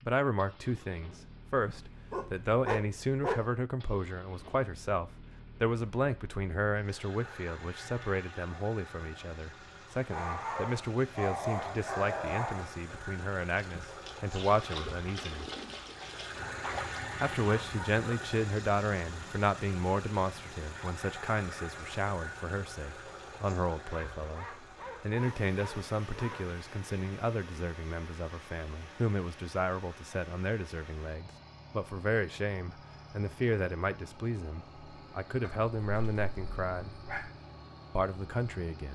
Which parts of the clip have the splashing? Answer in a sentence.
You can hear the splashing from 13.5 to 17.1 s.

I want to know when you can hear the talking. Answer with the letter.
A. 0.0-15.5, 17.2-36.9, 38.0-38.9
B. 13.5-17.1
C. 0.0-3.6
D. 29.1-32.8
A.